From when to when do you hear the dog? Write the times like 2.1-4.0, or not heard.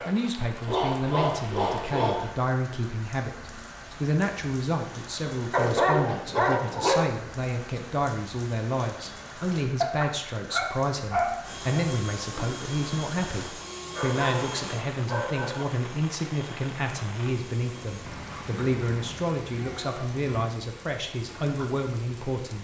0.7-2.4, 5.5-7.1, 9.8-11.8, 13.9-15.7, 18.0-20.6.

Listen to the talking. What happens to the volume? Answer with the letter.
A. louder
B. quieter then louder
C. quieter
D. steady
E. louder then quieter
D.